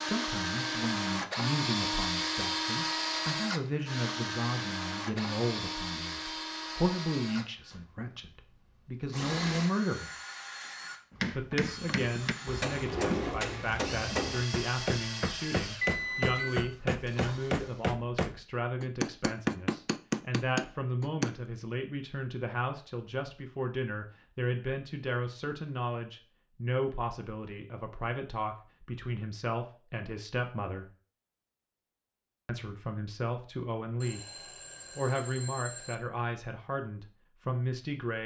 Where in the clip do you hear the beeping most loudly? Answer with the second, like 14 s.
16 s.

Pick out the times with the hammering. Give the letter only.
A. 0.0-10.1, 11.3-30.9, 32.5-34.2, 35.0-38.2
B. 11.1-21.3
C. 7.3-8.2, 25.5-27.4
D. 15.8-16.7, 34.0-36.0
B.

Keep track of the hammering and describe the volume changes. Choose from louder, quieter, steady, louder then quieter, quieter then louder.
louder.